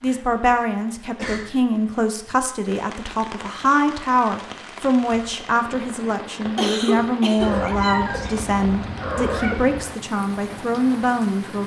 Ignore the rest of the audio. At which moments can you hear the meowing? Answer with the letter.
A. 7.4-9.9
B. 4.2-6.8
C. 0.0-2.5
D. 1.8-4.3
A.